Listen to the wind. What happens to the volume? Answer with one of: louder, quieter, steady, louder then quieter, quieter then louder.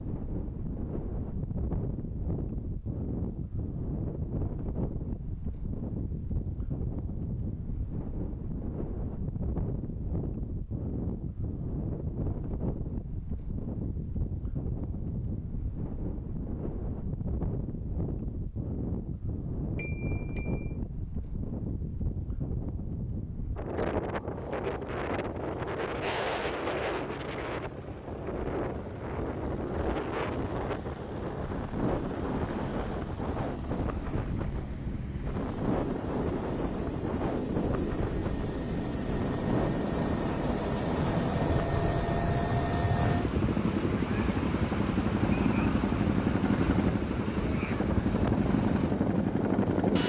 steady.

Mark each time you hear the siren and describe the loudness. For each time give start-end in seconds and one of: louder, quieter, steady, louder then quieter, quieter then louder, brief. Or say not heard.
not heard.